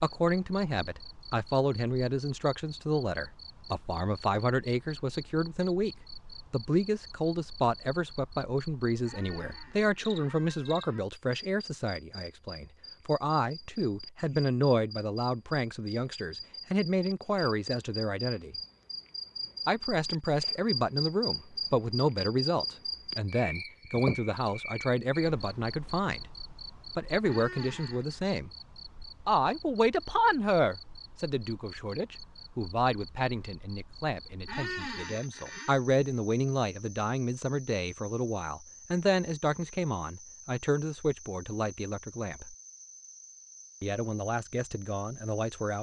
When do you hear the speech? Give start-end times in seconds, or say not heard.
0.0-18.6, 19.6-26.3, 26.9-28.5, 29.2-42.5, 43.8-45.7.